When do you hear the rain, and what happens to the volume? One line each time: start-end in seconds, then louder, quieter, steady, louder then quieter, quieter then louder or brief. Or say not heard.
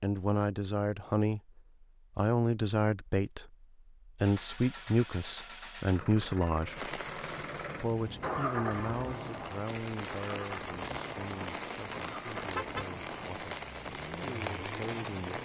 6.8-15.3 louder.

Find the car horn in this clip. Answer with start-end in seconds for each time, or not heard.
11.9-12.8.